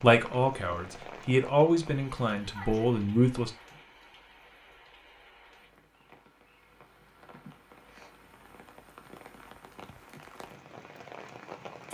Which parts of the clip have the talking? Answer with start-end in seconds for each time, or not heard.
0.0-3.5.